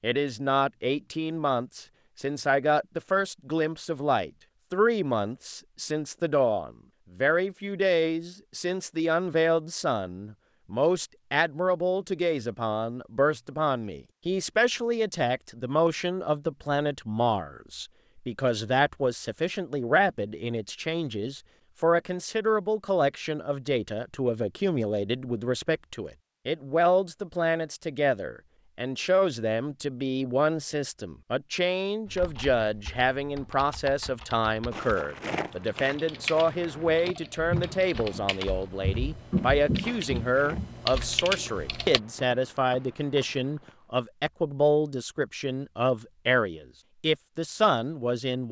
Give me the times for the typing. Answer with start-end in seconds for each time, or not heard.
32.0-42.0.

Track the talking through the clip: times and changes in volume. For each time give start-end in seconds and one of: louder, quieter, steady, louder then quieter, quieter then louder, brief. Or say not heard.
0.0-48.4 steady.